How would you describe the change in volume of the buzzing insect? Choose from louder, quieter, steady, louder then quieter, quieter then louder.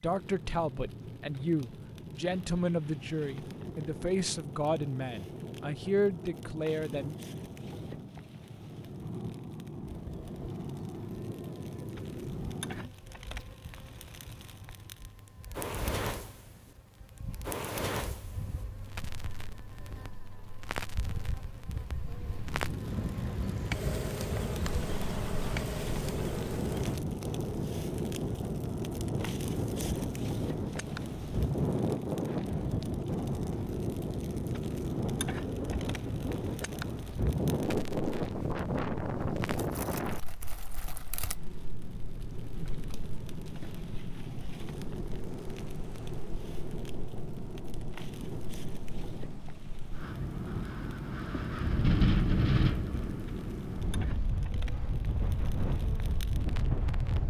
louder.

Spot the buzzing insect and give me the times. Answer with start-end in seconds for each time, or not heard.
9.8-27.0.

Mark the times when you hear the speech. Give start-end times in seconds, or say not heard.
0.0-7.2.